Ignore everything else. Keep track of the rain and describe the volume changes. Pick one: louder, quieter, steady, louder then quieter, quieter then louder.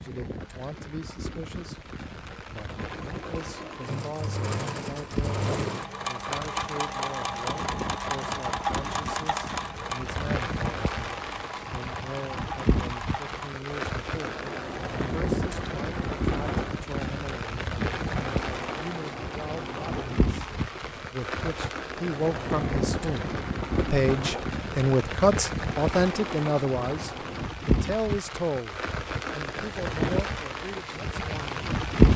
louder.